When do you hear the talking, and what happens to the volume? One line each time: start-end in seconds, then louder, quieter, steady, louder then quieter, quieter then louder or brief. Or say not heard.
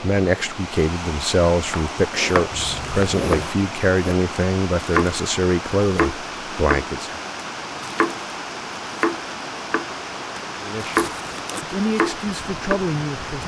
0.0-7.2 steady
10.6-13.4 brief.